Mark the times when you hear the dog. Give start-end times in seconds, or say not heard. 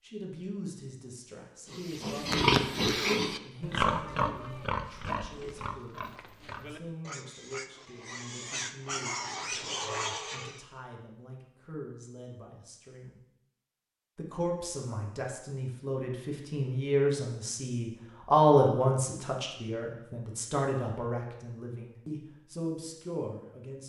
not heard.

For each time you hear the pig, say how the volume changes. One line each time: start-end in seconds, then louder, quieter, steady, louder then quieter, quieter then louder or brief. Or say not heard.
1.7-10.6 quieter then louder.